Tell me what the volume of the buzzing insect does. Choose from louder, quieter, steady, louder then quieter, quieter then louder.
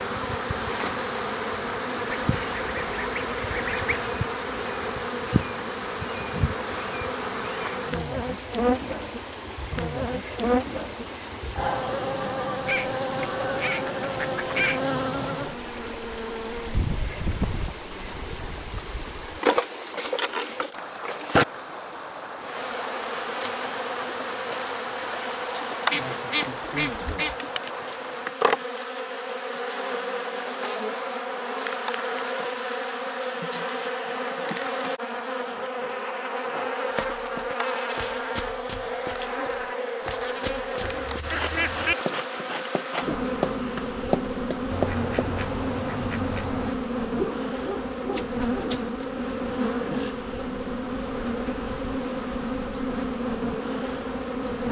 steady.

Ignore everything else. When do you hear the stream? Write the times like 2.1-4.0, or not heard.
0.0-28.3.